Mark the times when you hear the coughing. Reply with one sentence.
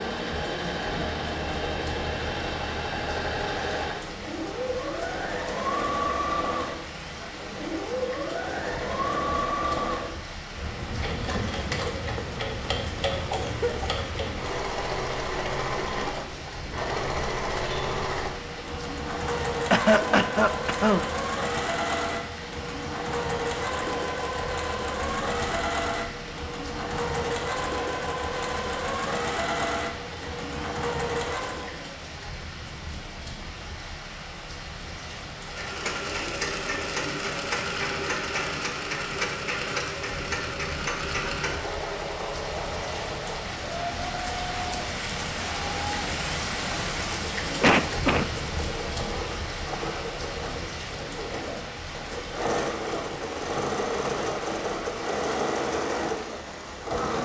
You can hear the coughing from 13.1 to 13.9 s, from 19.7 to 21.1 s and from 47.6 to 48.2 s.